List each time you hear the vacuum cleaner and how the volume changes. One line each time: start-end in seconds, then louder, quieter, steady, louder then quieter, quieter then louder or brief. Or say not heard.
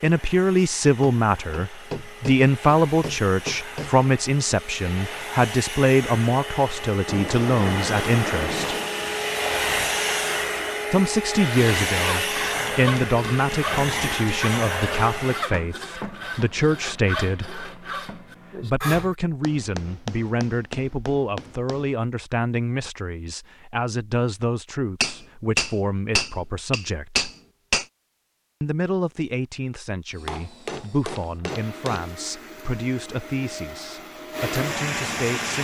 0.0-15.4 louder
30.1-35.5 louder.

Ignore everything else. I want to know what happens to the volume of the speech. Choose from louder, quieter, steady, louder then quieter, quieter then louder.
quieter.